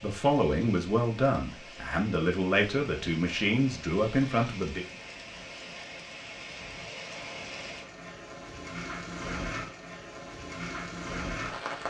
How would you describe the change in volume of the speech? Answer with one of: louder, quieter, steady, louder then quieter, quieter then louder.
steady.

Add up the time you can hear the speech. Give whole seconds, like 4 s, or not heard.
5 s.